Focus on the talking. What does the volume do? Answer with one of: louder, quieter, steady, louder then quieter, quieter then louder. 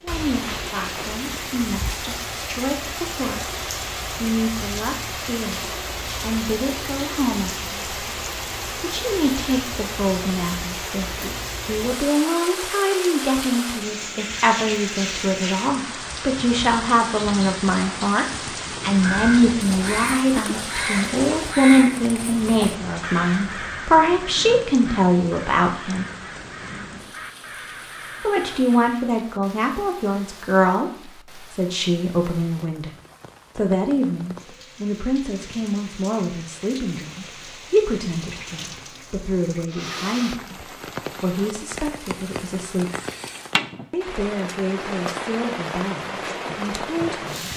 louder then quieter.